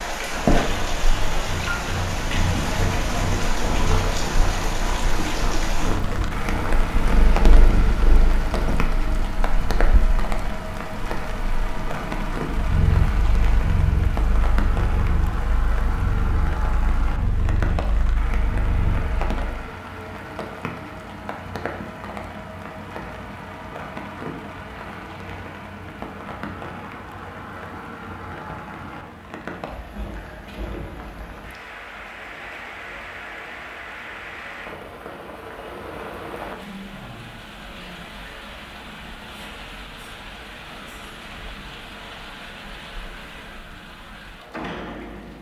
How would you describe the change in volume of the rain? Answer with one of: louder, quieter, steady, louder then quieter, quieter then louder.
quieter.